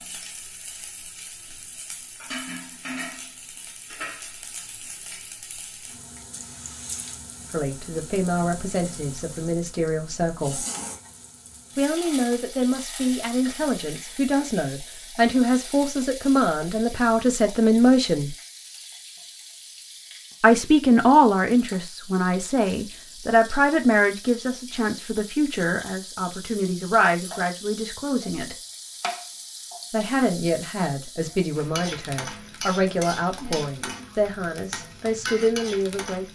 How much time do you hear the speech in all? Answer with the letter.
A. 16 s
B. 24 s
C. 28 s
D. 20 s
B.